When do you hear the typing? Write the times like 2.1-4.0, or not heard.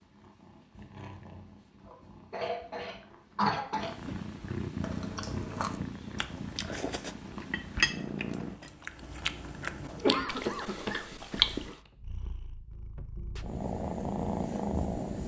not heard.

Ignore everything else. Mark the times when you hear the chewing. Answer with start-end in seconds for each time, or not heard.
4.8-11.8.